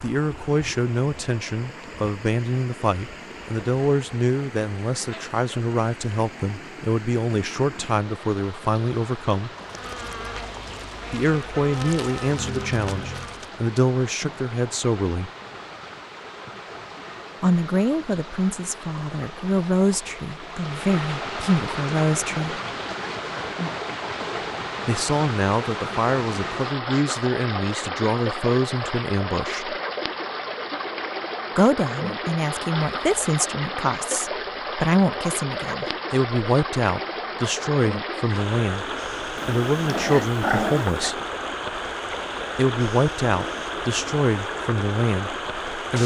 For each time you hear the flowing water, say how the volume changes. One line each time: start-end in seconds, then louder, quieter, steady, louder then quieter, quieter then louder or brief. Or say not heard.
0.0-46.0 louder.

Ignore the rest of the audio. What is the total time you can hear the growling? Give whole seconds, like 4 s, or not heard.
2 s.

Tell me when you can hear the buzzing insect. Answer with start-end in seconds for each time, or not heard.
9.6-13.5.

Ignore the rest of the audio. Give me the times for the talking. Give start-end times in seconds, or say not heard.
0.0-9.5, 11.1-15.3, 17.4-22.6, 24.9-29.8, 31.6-41.1, 42.5-46.0.